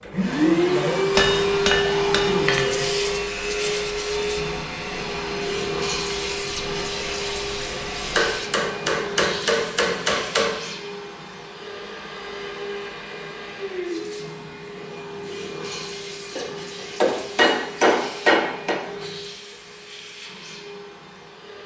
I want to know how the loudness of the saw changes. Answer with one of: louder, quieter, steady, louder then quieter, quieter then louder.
steady.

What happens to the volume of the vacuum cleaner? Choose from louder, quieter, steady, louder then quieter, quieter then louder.
quieter.